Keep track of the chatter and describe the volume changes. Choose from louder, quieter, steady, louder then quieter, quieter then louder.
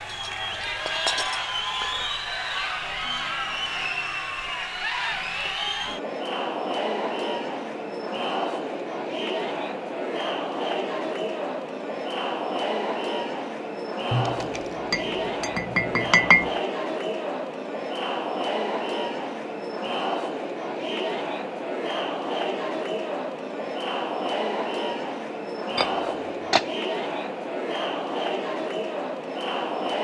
steady.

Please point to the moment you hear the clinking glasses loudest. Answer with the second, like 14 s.
16 s.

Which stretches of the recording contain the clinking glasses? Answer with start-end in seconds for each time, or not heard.
0.1-2.1, 14.1-16.5, 25.8-26.6.